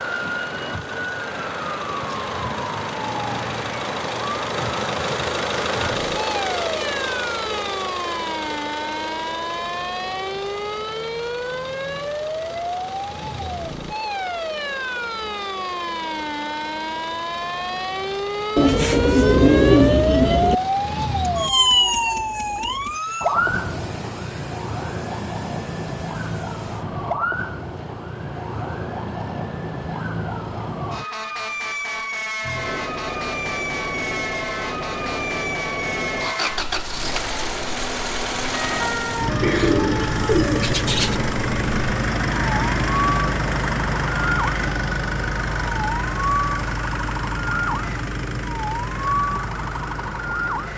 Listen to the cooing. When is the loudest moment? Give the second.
20 s.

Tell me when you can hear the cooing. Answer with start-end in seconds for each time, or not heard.
18.6-20.6, 39.4-41.1.